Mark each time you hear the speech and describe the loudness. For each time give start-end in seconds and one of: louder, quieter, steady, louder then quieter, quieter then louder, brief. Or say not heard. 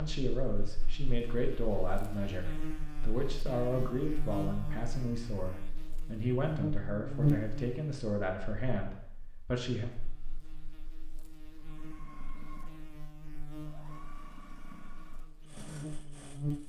0.0-9.9 steady.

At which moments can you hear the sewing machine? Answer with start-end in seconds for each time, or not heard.
11.5-16.6.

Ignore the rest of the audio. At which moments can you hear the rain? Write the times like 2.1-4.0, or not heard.
not heard.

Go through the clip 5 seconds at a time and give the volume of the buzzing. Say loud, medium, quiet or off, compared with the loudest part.
medium, loud, quiet, medium.